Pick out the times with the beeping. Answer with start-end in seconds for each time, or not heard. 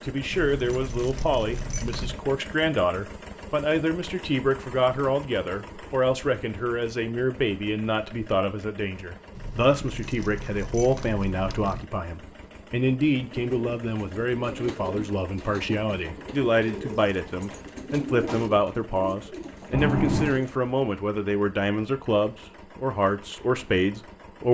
19.7-20.4.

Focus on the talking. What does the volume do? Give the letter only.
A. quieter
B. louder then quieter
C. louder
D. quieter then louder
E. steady
E.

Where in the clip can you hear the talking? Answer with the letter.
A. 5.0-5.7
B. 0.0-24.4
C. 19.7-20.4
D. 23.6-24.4
B.